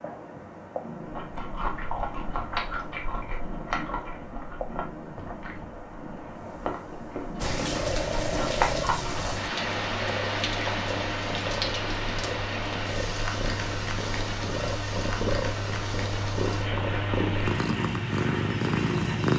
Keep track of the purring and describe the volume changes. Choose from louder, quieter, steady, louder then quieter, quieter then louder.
louder.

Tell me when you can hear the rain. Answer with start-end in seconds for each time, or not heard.
7.3-19.3.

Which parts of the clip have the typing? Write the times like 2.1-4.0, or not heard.
not heard.